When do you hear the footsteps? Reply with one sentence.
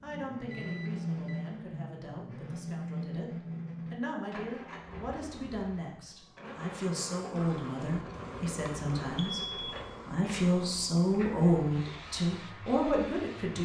The footsteps can't be heard in this clip.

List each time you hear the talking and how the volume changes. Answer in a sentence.
You can hear the talking from 0.0 to 13.6 s, getting louder.